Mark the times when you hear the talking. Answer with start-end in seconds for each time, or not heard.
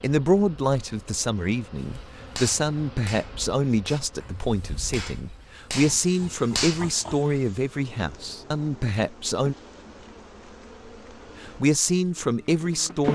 0.0-9.6, 11.4-13.0.